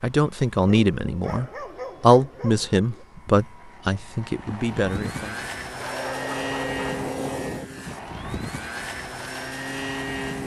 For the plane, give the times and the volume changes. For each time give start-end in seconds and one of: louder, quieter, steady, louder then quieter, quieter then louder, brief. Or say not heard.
0.2-10.4 louder.